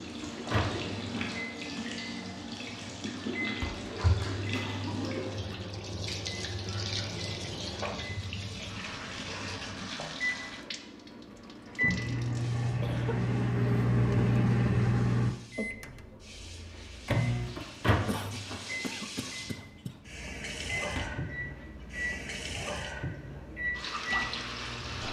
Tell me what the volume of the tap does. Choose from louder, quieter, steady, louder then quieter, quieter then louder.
quieter then louder.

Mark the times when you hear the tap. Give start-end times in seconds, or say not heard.
0.0-25.0.